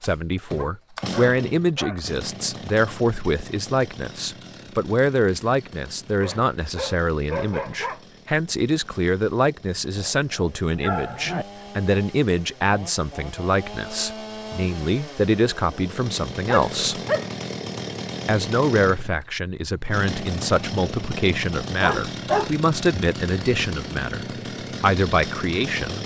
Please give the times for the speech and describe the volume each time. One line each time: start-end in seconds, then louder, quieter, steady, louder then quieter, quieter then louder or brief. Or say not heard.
0.0-17.0 steady
18.2-26.0 steady.